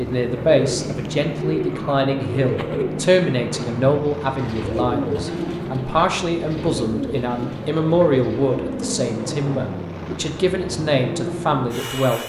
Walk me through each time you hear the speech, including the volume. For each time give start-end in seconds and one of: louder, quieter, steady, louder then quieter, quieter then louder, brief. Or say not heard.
0.0-12.2 steady.